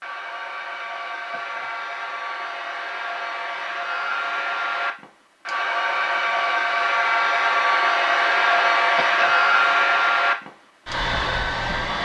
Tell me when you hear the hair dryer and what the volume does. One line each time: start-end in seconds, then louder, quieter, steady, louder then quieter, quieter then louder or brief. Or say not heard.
0.0-11.9 louder.